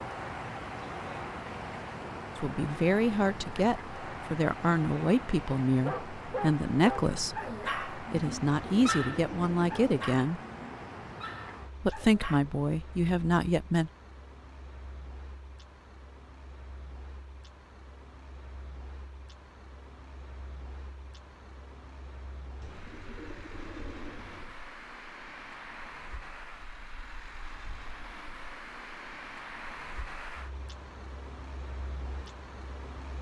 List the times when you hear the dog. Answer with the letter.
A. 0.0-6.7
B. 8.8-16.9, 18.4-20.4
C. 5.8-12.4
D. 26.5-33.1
C.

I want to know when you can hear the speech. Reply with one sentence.
You can hear the speech from 2.4 to 10.4 s and from 11.8 to 13.9 s.